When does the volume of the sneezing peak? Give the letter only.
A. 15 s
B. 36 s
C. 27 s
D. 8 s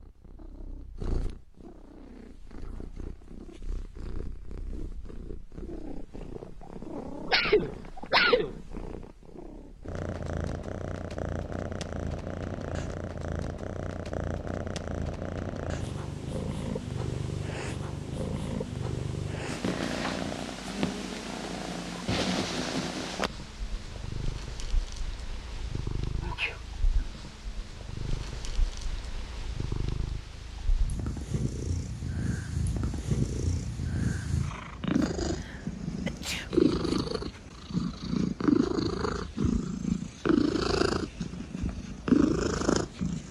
D.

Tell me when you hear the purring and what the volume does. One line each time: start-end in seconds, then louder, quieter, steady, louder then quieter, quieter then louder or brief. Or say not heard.
0.0-43.2 louder.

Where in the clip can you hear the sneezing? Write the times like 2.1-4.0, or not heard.
7.2-8.6, 26.2-27.1, 35.2-36.5.